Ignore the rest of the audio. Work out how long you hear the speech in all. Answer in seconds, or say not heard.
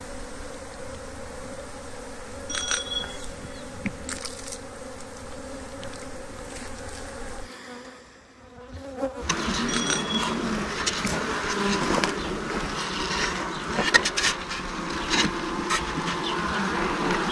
not heard.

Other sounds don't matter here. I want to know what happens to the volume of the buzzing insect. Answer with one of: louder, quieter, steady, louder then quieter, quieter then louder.
louder.